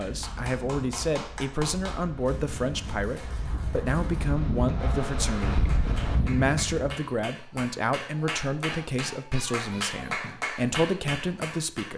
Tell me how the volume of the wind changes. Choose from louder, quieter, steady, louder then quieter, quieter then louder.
louder.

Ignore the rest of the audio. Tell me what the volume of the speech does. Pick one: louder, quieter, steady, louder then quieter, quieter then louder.
steady.